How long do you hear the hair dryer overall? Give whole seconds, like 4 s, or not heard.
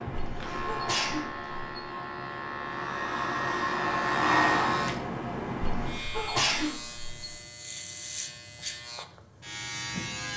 2 s.